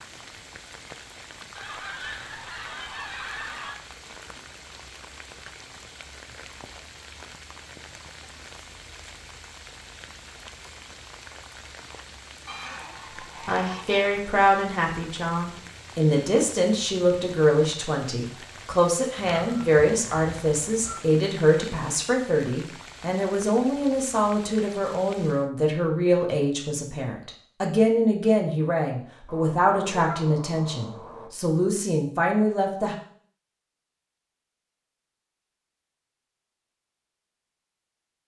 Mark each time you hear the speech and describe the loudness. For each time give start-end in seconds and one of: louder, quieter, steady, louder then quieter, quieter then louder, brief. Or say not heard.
13.4-33.0 steady.